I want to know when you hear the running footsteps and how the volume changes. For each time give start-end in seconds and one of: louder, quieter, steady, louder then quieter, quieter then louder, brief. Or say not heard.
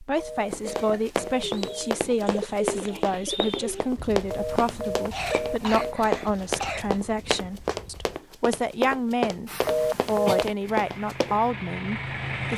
0.5-11.3 steady.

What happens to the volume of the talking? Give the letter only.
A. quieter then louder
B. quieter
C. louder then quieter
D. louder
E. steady
E.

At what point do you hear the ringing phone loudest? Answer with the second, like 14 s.
10 s.